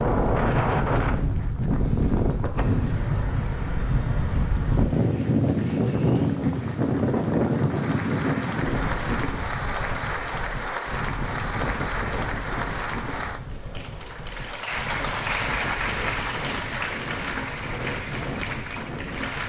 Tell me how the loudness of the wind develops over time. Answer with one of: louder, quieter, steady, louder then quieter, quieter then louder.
quieter.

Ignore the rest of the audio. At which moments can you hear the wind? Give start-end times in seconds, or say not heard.
0.0-19.4.